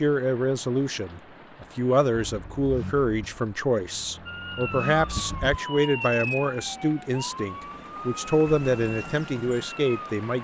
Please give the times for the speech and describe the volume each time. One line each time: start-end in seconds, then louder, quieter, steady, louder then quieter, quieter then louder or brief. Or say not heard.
0.0-10.3 steady.